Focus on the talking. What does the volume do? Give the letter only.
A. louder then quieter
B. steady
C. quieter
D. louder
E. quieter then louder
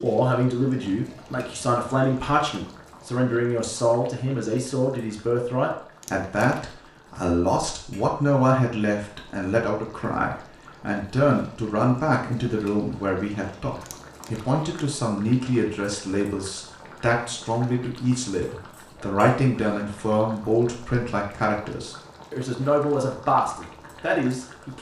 B.